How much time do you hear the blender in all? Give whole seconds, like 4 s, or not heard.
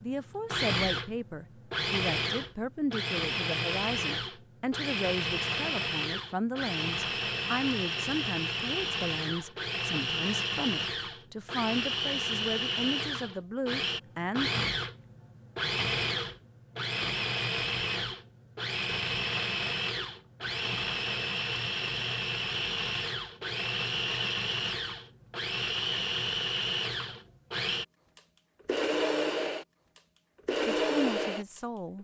32 s.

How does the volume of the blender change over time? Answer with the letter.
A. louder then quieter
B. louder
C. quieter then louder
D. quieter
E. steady
E.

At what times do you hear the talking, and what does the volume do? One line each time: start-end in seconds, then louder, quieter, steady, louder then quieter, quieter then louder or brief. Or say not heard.
0.0-14.7 steady
30.6-32.0 brief.